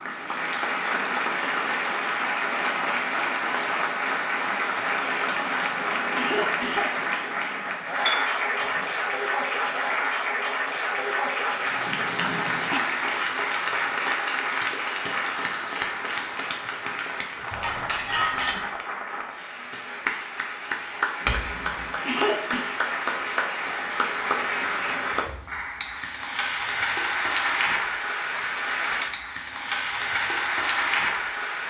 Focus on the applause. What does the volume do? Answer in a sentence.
The volume of the applause stays about the same.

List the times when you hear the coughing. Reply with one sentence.
You can hear the coughing from 5.5 to 6.9 s, from 11.8 to 12.8 s and from 21.2 to 22.6 s.